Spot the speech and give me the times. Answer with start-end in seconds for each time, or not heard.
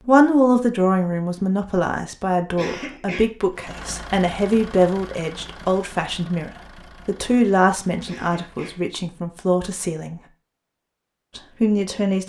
0.1-10.2, 11.3-12.2.